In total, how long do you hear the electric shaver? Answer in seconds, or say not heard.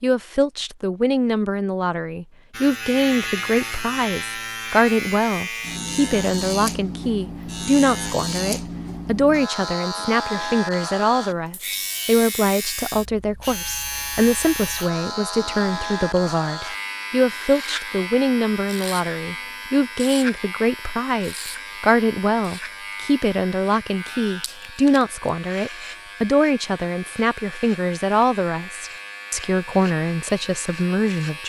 29 s.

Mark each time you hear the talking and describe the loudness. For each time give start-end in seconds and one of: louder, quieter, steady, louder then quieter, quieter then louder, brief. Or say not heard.
0.0-31.4 steady.